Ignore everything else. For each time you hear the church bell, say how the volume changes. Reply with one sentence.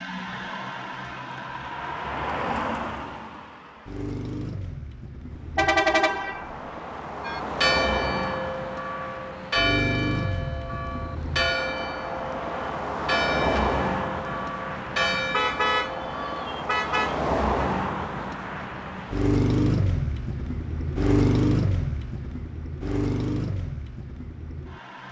You can hear the church bell from 7.2 to 16.6 s, at a steady volume.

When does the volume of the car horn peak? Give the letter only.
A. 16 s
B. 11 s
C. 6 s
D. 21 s
C.